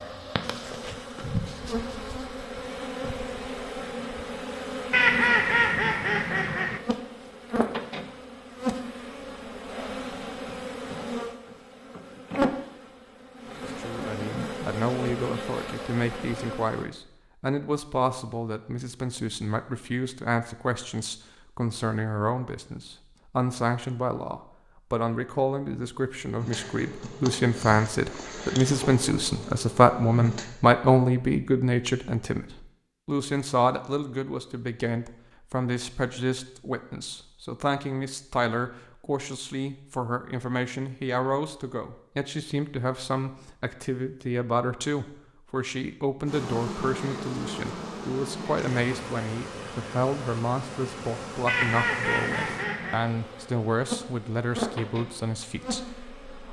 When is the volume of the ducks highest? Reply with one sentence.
The loudest moment of the ducks is at 5 seconds.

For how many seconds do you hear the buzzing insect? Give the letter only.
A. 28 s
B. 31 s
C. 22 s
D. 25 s
B.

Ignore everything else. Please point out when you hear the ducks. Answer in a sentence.
You can hear the ducks from 4.9 to 6.8 s and from 51.5 to 53.0 s.